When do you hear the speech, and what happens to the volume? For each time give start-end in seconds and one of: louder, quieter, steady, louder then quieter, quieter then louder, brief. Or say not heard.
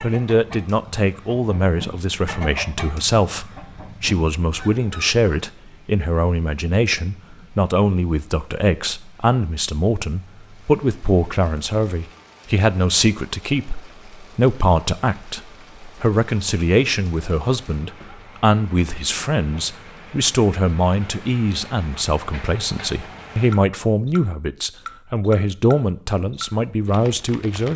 0.0-27.7 steady.